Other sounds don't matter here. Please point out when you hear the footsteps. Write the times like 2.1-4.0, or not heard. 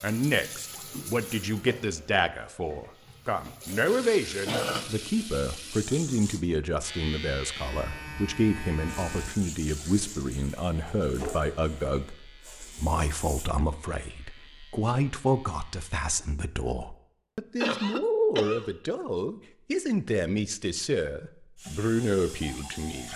not heard.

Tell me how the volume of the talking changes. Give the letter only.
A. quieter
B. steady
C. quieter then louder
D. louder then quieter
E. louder
B.